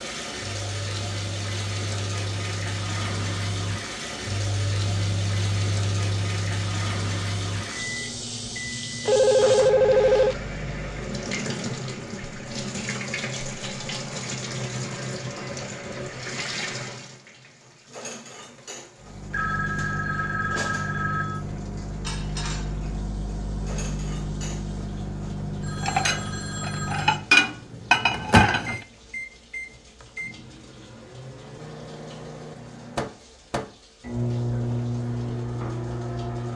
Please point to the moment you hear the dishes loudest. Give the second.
27 s.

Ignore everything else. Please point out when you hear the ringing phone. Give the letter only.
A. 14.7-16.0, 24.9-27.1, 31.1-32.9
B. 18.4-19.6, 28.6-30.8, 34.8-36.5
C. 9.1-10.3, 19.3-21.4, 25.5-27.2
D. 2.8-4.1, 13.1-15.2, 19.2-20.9
C.